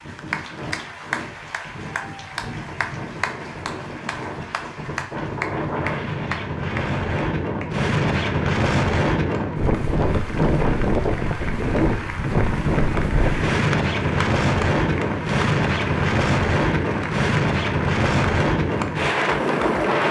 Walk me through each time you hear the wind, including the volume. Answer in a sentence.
You can hear the wind from 0.0 to 20.0 s, getting louder.